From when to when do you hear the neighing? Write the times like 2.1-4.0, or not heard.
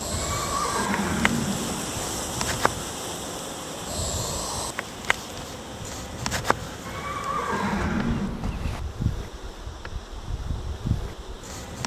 0.1-2.1, 6.8-8.8.